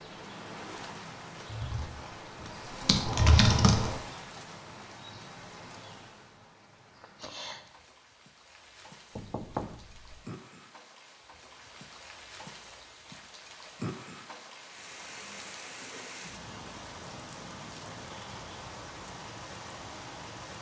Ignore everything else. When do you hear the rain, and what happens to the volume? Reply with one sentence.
The rain can be heard from 0.0 to 20.5 s, getting quieter then louder.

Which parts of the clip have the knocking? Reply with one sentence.
The knocking can be heard from 9.2 to 10.2 s.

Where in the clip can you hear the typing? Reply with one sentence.
The typing can be heard from 1.4 to 4.0 s.